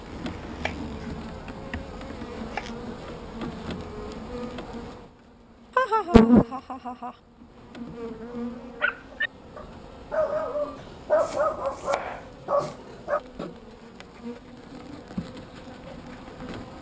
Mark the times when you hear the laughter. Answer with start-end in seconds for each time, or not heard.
5.8-7.2.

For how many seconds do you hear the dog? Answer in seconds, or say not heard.
5 s.